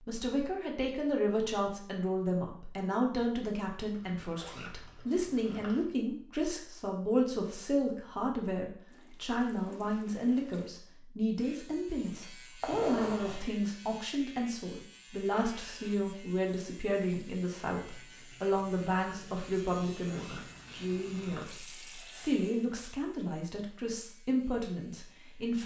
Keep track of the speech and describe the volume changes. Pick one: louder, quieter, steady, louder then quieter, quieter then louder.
steady.